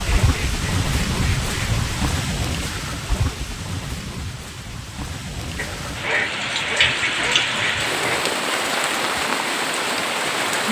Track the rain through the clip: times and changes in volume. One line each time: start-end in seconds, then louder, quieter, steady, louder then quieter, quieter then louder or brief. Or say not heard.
0.0-10.6 quieter then louder.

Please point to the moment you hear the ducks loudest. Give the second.
6 s.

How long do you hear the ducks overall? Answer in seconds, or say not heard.
5 s.